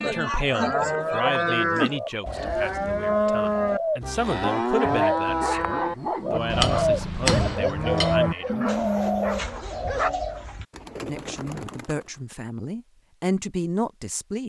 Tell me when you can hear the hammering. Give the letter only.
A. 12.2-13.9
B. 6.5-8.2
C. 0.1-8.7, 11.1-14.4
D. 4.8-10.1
B.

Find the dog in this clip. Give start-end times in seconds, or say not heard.
4.8-10.1.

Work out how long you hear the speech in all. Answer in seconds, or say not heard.
12 s.